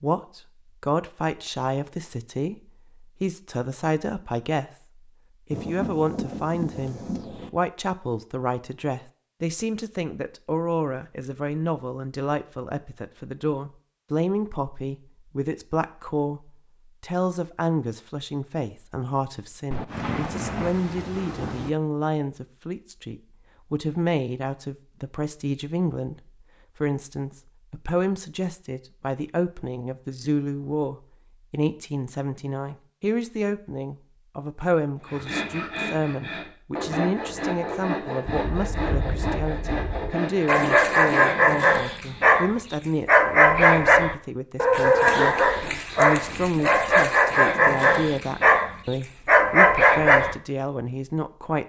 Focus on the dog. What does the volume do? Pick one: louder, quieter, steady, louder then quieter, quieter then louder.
steady.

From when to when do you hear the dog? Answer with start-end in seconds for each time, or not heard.
40.5-50.4.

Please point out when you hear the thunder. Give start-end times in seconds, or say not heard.
5.5-7.5, 19.7-21.7, 38.2-40.1.